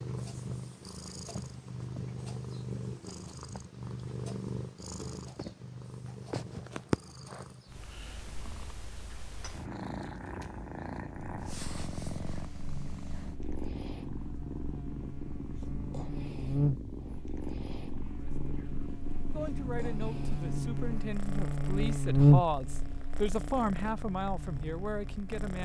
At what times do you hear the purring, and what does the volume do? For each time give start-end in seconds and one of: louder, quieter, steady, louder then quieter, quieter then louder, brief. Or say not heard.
0.0-25.6 quieter.